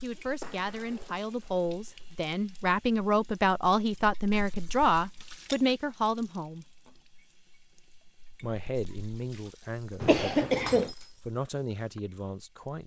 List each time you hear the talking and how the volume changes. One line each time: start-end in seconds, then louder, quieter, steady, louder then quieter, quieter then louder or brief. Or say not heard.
0.0-6.7 louder
8.4-10.7 brief
11.2-12.8 brief.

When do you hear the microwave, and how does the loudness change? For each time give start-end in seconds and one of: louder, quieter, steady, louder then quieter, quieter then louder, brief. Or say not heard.
not heard.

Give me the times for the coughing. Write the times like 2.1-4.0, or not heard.
10.0-10.9.